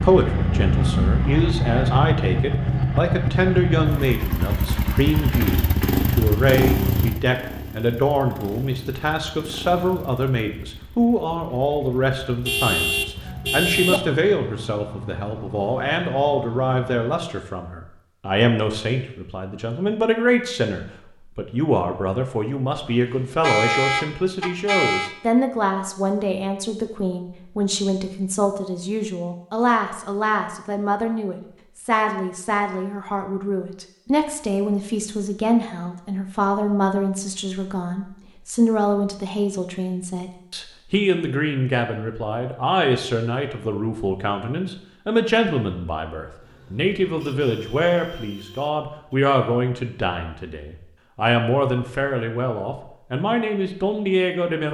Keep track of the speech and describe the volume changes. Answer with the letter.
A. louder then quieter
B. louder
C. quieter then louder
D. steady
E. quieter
D.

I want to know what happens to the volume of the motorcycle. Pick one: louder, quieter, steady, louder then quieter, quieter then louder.
quieter then louder.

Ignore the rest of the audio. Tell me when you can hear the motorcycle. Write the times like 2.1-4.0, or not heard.
0.0-17.2.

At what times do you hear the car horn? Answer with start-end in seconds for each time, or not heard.
12.4-14.0, 23.1-25.1, 46.4-49.2.